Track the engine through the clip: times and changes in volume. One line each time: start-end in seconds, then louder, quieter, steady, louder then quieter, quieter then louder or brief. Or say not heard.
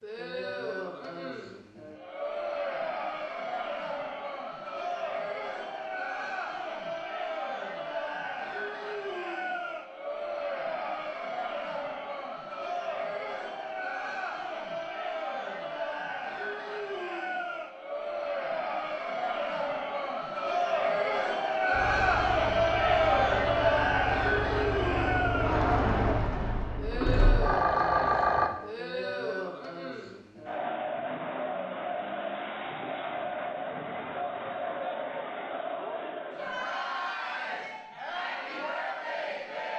21.7-28.5 louder.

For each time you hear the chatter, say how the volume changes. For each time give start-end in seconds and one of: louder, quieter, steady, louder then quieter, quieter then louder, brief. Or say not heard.
0.0-39.7 louder then quieter.